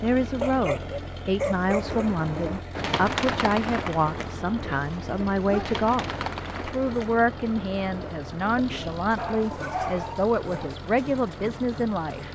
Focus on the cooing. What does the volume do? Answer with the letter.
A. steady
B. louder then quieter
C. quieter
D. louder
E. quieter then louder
C.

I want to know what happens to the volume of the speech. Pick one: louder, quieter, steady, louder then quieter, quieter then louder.
steady.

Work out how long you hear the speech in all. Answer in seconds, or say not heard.
12 s.